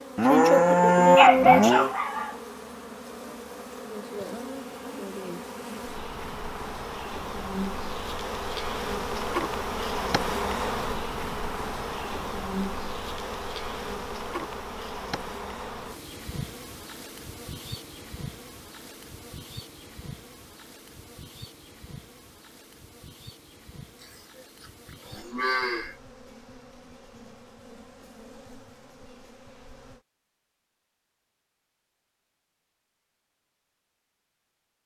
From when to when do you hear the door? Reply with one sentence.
You can't hear the door here.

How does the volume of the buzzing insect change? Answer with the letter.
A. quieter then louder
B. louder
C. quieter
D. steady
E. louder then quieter
E.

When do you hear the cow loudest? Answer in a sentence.
The loudest moment of the cow is at 1 second.